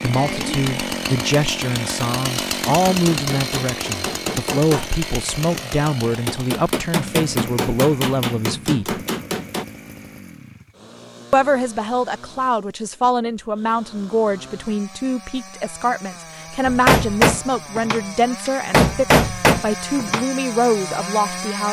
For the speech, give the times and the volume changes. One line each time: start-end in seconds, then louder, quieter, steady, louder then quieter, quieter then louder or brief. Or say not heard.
0.0-9.0 steady
11.3-21.6 steady.